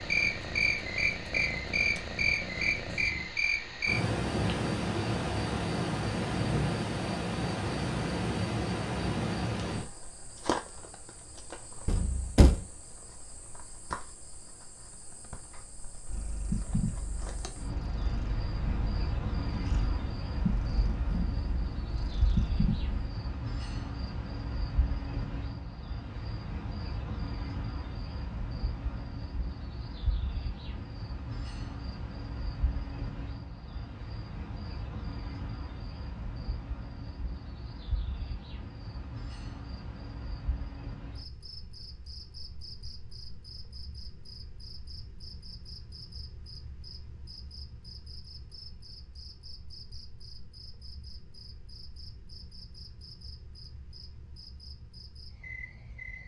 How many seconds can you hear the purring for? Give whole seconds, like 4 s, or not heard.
10 s.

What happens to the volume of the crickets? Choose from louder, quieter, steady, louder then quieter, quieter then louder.
quieter.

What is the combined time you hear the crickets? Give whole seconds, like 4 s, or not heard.
56 s.